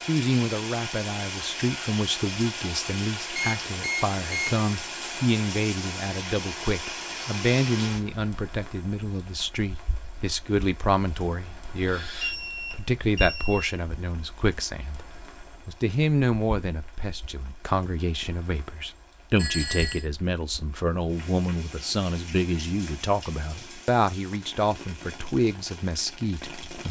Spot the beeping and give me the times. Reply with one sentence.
You can hear the beeping from 3.4 to 4.7 s, from 11.8 to 13.8 s and from 19.4 to 20.1 s.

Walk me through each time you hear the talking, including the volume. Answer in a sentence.
The talking can be heard from 0.1 to 15.1 s, at a steady volume; and from 15.7 to 26.8 s, at a steady volume.